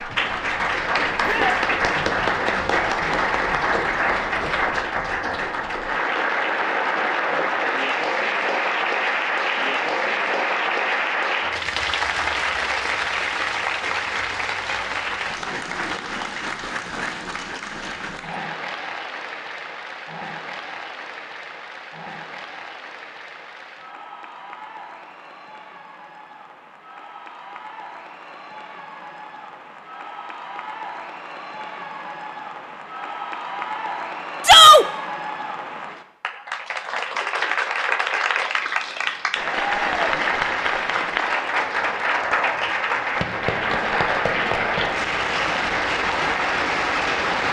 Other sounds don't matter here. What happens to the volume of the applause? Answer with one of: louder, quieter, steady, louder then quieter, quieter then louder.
quieter then louder.